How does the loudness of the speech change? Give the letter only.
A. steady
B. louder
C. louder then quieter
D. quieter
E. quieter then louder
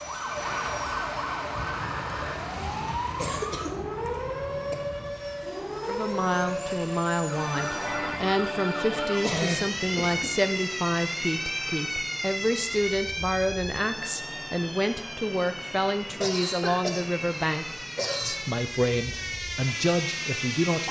A.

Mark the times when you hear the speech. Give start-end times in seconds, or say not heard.
5.8-20.8.